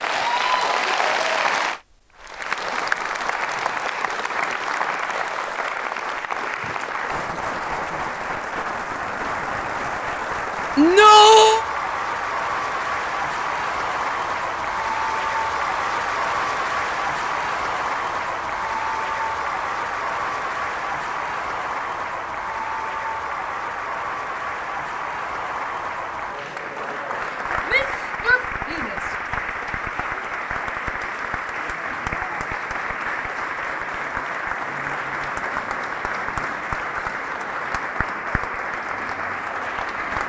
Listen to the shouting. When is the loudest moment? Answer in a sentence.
The volume of the shouting peaks at 11 seconds.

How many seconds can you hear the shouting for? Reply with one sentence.
You can hear the shouting for 2 seconds altogether.